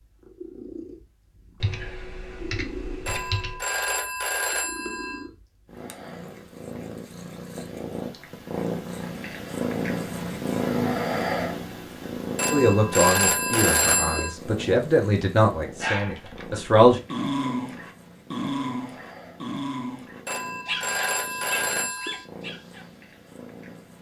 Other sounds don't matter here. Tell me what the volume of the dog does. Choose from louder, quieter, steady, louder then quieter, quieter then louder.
quieter.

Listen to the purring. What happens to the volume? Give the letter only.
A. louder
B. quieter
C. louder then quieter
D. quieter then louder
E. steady
C.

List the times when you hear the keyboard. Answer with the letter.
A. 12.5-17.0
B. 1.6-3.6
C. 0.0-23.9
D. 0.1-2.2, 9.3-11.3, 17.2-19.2
B.